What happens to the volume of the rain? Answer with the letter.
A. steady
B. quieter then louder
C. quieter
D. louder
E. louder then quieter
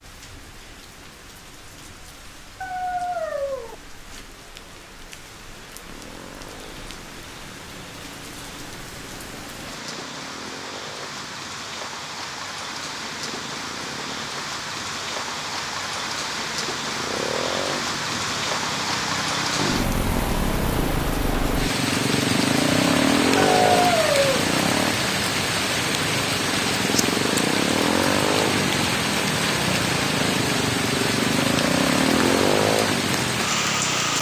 D.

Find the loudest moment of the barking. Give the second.
24 s.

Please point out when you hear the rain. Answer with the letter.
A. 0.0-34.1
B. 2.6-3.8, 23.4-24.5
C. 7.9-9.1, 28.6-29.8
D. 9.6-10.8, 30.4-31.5
A.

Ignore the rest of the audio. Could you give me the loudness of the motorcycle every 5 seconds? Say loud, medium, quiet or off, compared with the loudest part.
off, quiet, quiet, medium, loud, loud, loud.